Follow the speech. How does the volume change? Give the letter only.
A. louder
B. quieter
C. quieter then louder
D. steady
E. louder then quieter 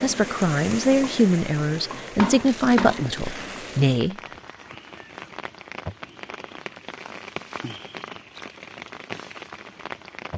B.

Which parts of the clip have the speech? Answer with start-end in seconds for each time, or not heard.
0.0-4.2.